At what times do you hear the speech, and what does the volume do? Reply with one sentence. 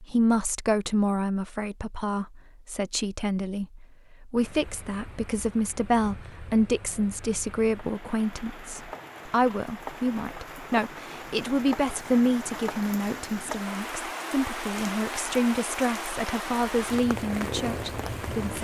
You can hear the speech from 0.0 to 18.5 s, at a steady volume.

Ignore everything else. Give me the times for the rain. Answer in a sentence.
You can hear the rain from 4.3 to 18.5 s.